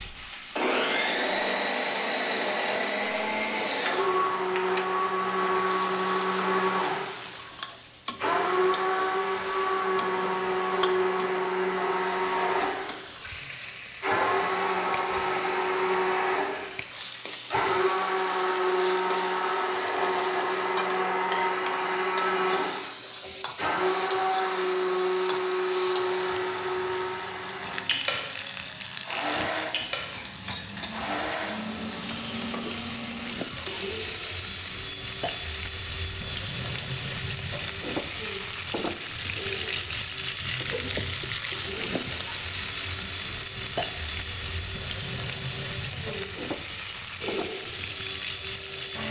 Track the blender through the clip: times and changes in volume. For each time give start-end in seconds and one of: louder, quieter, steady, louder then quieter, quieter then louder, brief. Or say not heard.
0.0-49.0 quieter.